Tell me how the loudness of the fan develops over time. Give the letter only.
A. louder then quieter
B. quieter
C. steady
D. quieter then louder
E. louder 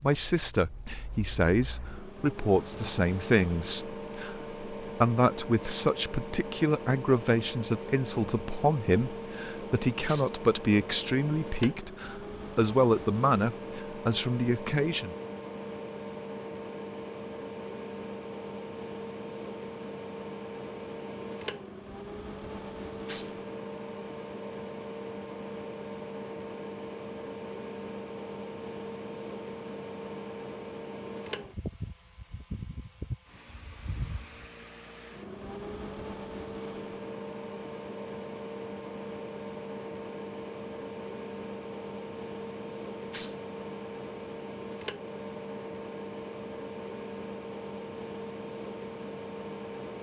C.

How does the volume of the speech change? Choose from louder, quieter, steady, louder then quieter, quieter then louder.
steady.